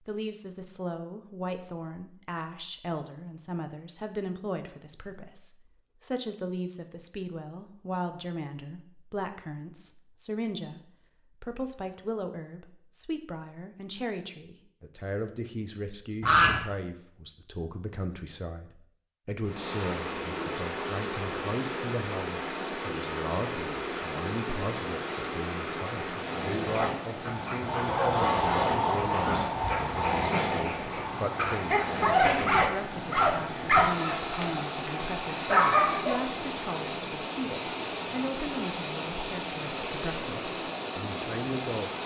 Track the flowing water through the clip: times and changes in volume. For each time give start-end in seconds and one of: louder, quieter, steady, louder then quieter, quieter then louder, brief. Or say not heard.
19.4-42.0 steady.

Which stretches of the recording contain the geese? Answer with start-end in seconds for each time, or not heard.
16.2-16.6, 27.6-29.4.